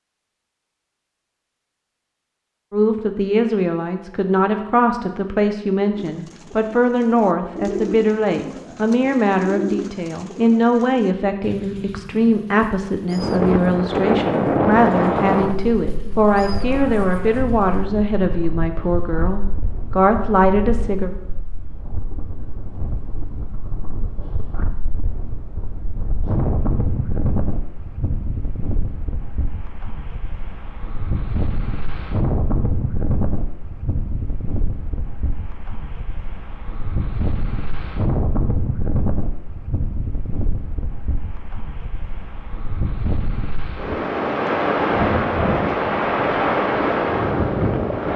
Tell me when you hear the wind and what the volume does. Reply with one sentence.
You can hear the wind from 13.1 to 48.1 s, getting quieter then louder.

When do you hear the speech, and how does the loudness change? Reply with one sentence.
The speech can be heard from 2.7 to 21.1 s, at a steady volume.